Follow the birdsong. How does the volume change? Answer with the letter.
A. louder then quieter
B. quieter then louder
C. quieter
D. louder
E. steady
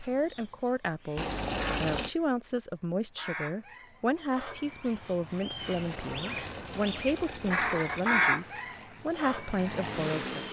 D.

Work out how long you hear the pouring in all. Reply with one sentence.
The pouring can be heard for 4 seconds in total.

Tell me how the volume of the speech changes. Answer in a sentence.
The volume of the speech stays about the same.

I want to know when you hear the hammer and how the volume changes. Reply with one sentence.
You can't hear the hammer here.